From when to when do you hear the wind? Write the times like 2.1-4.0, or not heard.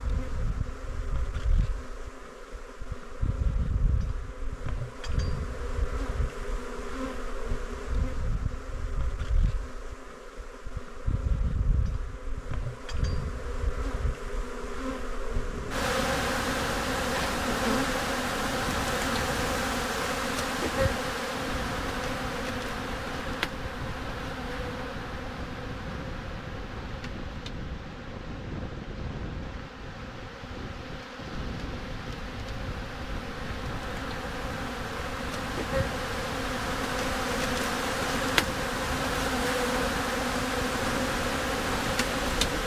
15.4-42.6.